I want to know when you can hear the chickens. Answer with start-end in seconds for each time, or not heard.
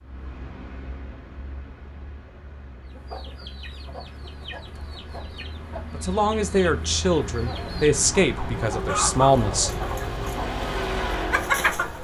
2.9-11.9.